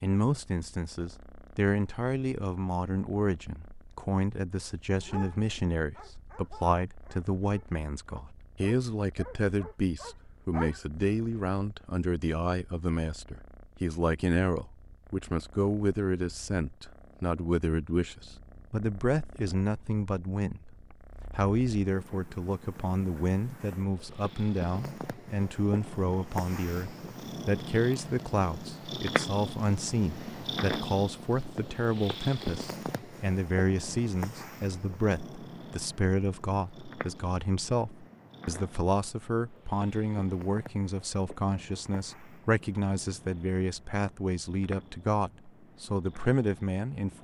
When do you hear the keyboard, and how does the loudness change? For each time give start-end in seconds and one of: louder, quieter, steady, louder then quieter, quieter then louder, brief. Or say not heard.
not heard.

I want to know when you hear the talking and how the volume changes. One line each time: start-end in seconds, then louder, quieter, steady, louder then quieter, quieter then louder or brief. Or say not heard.
0.0-47.1 steady.